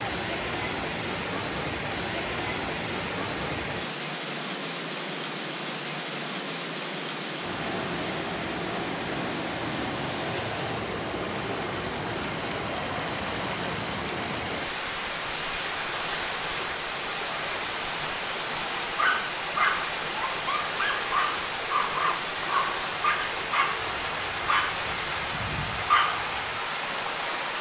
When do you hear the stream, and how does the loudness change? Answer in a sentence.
You can hear the stream from 0.0 to 27.5 s, at a steady volume.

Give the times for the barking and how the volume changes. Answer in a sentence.
The barking can be heard from 18.9 to 26.2 s, getting quieter.